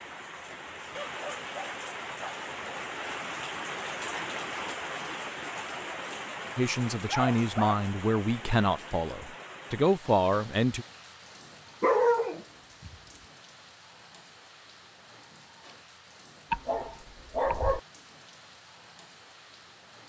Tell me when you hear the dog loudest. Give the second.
12 s.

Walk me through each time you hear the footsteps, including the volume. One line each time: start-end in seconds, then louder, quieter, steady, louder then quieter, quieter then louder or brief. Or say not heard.
not heard.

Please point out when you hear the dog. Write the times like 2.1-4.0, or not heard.
0.9-2.5, 7.0-7.8, 11.8-12.9, 16.5-17.8.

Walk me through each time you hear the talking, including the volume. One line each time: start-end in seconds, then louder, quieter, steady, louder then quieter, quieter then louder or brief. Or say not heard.
6.5-10.8 quieter then louder.